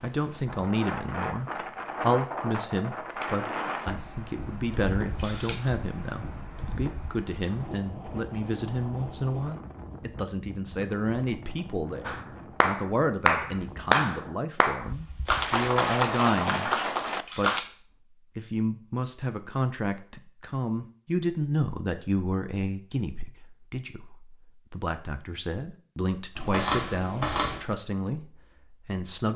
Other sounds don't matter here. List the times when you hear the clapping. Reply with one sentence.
The clapping can be heard from 12.1 to 17.6 s.